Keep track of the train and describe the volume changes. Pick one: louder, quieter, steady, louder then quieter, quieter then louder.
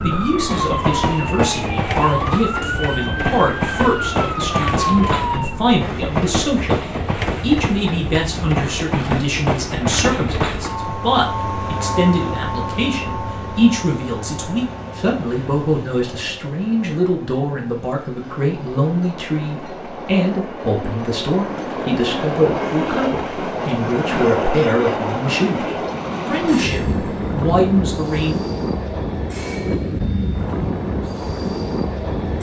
quieter then louder.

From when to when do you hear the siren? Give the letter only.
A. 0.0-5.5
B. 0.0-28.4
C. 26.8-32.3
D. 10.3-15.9
A.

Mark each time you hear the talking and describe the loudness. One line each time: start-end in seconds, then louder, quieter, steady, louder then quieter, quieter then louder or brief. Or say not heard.
0.0-28.4 steady.